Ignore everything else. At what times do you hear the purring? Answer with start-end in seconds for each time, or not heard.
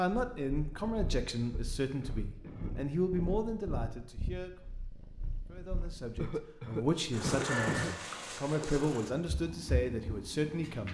0.1-10.8.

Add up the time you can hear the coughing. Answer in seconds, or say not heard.
4 s.